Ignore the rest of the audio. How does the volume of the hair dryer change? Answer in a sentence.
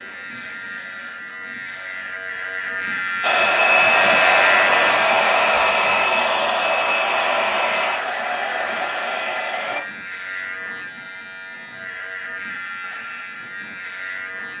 The volume of the hair dryer goes down.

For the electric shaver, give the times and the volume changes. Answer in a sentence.
You can hear the electric shaver from 0.0 to 14.5 s, getting louder then quieter.